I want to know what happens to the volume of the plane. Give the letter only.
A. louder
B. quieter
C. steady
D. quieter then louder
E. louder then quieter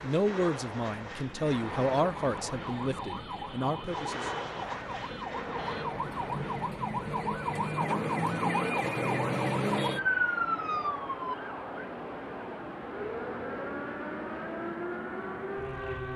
C.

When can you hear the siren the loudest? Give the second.
10 s.